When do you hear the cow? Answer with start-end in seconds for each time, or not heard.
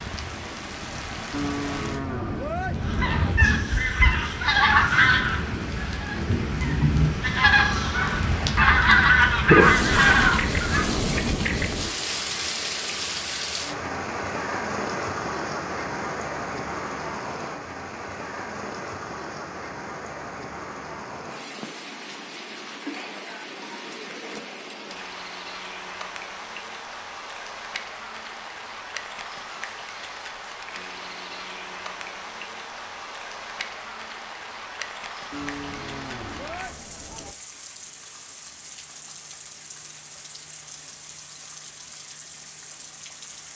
1.3-3.4, 35.3-37.4.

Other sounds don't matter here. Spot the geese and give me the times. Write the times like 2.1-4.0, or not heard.
2.8-10.9.